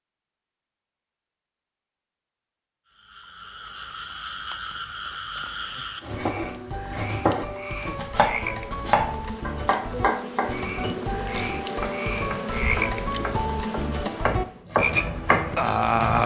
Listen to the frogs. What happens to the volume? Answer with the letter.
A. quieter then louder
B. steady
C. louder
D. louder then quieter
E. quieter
C.